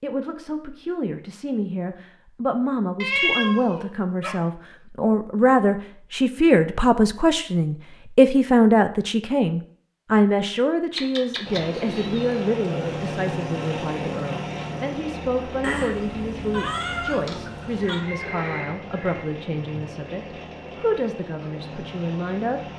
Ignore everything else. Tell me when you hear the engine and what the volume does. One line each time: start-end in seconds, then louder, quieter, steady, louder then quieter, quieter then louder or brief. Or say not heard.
11.4-22.7 quieter.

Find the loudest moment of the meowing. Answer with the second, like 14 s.
3 s.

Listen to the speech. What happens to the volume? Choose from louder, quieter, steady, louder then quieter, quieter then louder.
louder then quieter.